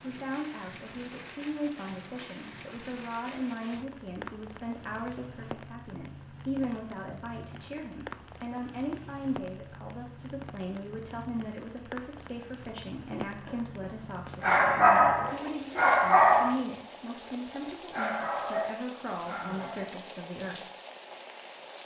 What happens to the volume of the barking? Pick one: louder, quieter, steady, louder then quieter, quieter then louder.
quieter.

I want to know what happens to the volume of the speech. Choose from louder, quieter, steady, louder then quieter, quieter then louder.
steady.